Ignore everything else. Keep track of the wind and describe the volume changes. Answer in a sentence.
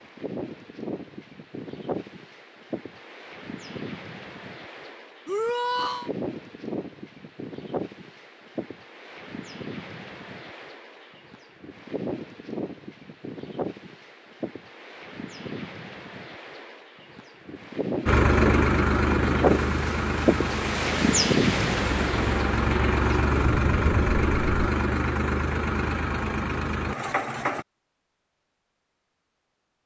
The volume of the wind goes up.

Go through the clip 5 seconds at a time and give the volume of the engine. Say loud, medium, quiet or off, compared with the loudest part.
off, off, off, loud, loud, medium.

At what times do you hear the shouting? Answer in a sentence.
You can hear the shouting from 5.2 to 6.1 s.